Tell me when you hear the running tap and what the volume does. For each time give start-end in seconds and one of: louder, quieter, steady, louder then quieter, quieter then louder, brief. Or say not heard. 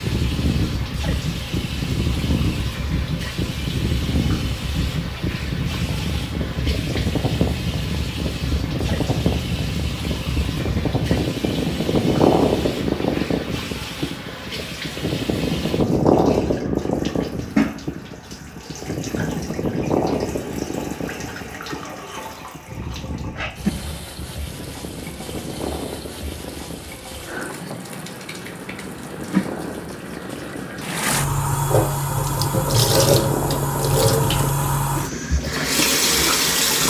0.0-36.8 louder.